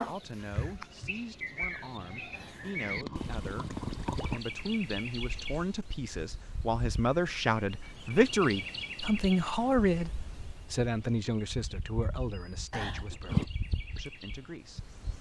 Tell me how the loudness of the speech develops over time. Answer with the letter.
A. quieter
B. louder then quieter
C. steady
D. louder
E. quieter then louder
B.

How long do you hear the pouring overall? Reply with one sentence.
You can hear the pouring for 3 seconds altogether.